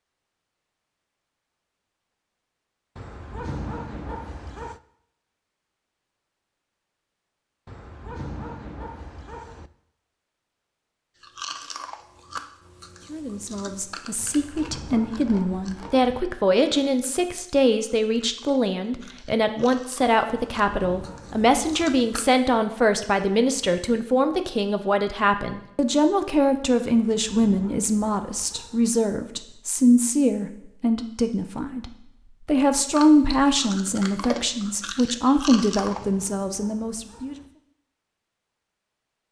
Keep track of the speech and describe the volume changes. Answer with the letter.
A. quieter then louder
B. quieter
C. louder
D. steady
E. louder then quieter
D.